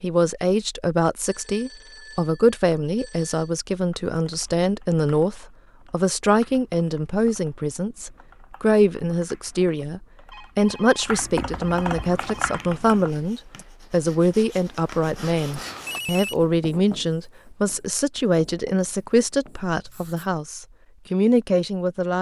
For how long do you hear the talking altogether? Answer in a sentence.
The talking can be heard for 22 seconds in total.